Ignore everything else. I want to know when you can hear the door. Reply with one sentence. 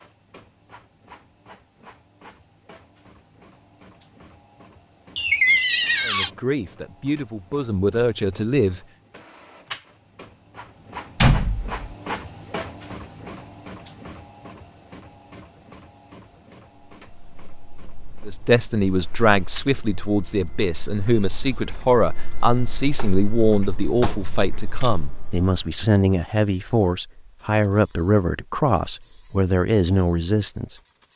You can hear the door from 5.2 to 6.3 s, from 11.2 to 11.8 s and from 22.9 to 24.2 s.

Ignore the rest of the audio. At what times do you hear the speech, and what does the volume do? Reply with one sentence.
You can hear the speech briefly from 6.0 to 8.8 s; and from 18.2 to 31.1 s, at a steady volume.